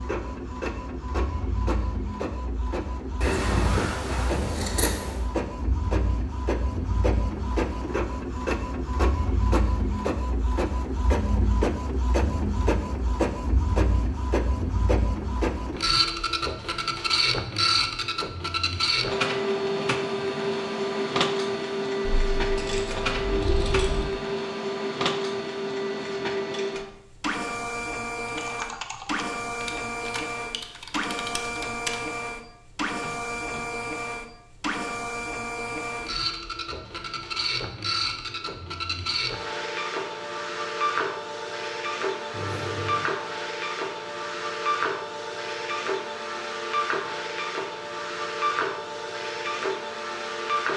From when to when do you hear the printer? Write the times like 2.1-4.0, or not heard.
0.0-50.7.